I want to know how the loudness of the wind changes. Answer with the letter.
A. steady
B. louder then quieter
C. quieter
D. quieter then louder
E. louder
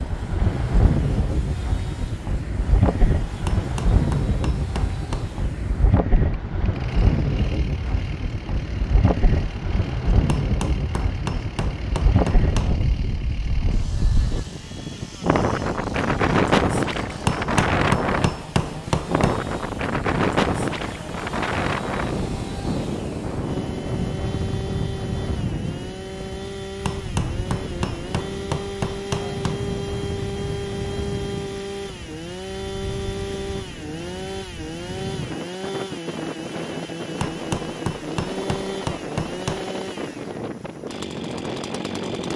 C.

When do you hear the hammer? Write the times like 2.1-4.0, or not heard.
3.5-5.4, 10.2-12.8, 17.2-19.4, 26.9-29.6, 37.2-39.7.